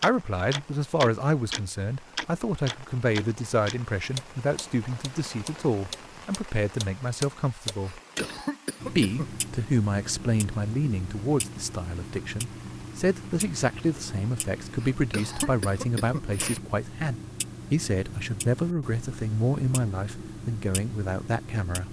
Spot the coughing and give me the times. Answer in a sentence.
You can hear the coughing from 7.8 to 9.3 s and from 14.8 to 16.6 s.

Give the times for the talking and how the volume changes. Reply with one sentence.
The talking can be heard from 0.0 to 8.0 s, at a steady volume; and from 8.8 to 21.8 s, at a steady volume.